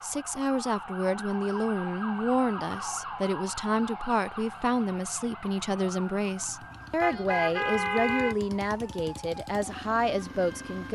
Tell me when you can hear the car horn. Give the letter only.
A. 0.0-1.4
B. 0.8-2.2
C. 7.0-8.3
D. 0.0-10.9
C.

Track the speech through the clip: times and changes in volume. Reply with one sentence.
You can hear the speech from 0.0 to 10.9 s, at a steady volume.